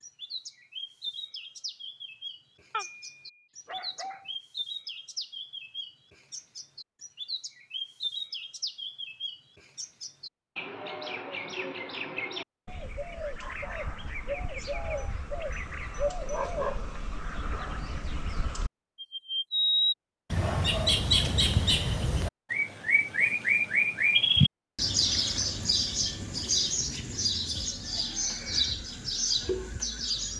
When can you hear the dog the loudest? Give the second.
17 s.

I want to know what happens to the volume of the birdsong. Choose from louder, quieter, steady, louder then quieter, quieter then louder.
louder.